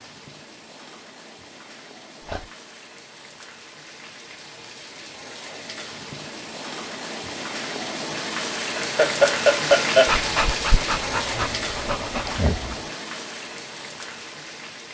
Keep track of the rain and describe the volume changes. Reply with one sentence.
The loudness of the rain goes up, then down.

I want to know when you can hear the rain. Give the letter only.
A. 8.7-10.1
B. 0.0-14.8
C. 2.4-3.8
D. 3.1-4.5
B.